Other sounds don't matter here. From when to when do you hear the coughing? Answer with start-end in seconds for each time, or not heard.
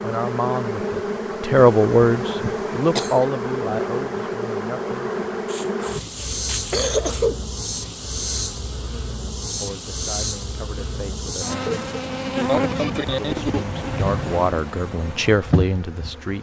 1.6-3.2, 5.5-7.4, 11.7-13.7.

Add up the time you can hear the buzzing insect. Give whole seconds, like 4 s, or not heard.
16 s.